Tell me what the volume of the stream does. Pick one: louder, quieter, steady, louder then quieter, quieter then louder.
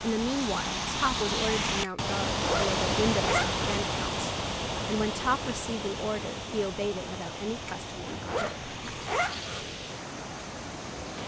quieter.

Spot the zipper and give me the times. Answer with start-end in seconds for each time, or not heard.
1.8-3.6, 7.7-9.7.